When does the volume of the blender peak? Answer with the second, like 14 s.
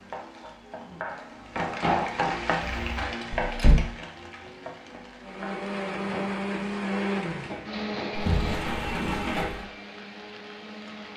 7 s.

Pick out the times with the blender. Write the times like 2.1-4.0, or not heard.
5.2-11.1.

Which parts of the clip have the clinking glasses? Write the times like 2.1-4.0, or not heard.
not heard.